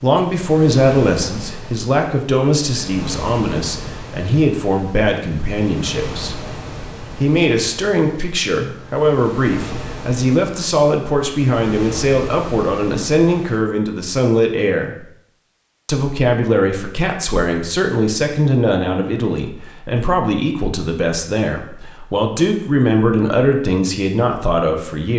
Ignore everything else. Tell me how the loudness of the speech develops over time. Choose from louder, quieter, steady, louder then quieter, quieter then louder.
steady.